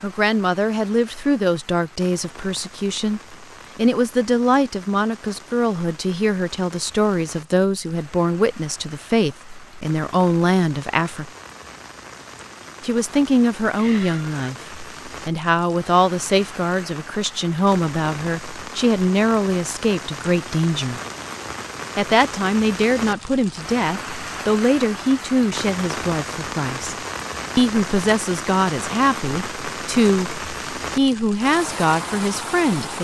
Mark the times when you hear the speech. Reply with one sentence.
You can hear the speech from 0.0 to 11.3 s, from 12.8 to 21.0 s, from 21.9 to 26.9 s and from 27.6 to 32.9 s.